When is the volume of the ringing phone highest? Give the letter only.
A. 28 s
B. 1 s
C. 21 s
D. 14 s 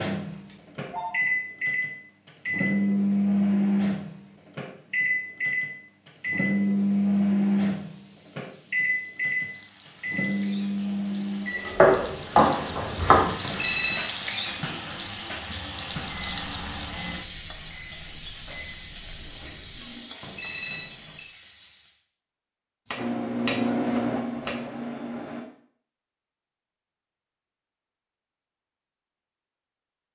D.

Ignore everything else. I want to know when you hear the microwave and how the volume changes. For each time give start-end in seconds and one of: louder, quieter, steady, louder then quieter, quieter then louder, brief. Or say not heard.
0.0-20.1 quieter
22.9-25.4 brief.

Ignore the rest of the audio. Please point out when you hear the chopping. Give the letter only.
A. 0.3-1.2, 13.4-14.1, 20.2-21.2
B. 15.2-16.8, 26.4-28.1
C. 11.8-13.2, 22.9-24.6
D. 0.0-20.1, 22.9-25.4
C.